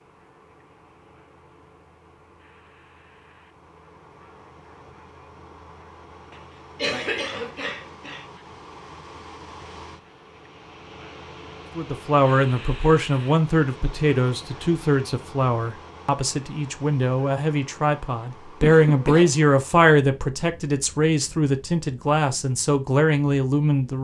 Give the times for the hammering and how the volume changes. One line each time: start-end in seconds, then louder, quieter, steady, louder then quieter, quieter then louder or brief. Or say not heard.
not heard.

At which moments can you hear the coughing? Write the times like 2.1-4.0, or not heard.
6.3-8.2, 18.6-19.4.